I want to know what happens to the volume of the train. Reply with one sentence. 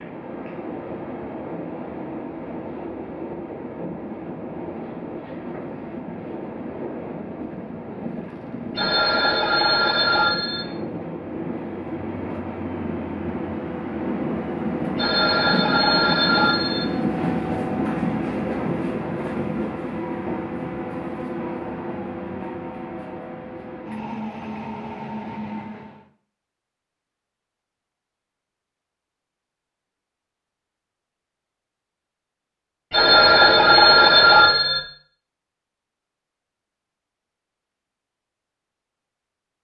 The volume of the train goes up, then down.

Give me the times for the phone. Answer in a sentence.
The phone can be heard from 8.8 to 10.7 s, from 14.9 to 16.9 s and from 32.9 to 34.8 s.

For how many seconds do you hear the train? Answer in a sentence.
The train can be heard for 26 seconds in total.